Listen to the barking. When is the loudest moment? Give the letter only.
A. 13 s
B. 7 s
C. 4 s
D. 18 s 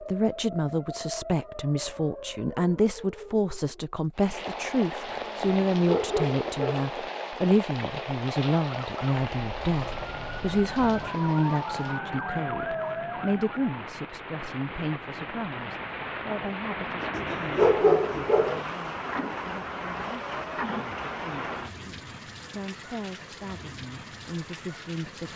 D.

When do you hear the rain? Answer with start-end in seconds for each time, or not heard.
4.2-25.3.